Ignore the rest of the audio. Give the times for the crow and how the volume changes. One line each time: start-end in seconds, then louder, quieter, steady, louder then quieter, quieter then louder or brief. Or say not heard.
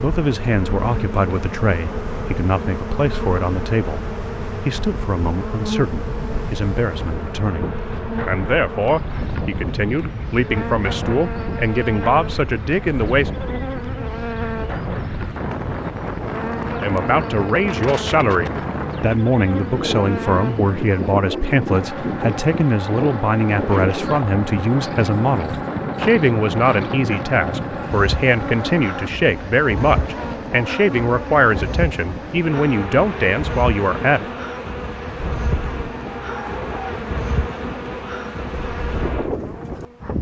not heard.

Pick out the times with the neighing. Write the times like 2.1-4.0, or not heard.
not heard.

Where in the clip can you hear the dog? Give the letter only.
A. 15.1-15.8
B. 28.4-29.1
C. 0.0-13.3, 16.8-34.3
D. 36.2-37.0
D.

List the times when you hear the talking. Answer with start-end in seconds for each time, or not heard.
0.0-13.3, 16.8-34.3.